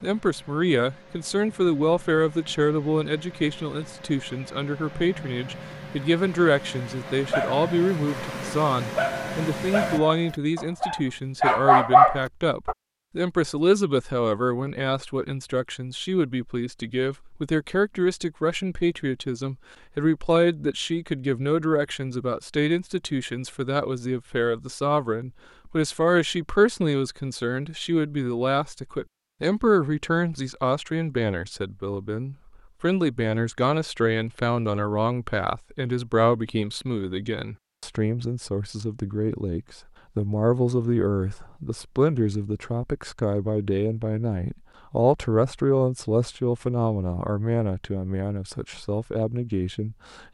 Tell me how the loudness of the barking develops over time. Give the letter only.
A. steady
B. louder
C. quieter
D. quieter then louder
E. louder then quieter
B.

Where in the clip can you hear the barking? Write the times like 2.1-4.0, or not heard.
7.1-12.8.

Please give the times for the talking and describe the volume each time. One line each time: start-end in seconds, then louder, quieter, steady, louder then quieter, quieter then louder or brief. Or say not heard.
0.0-50.3 steady.